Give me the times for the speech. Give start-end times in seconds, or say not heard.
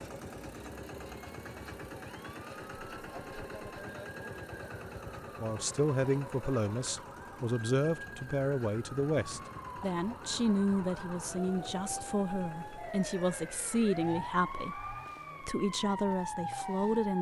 5.3-17.1.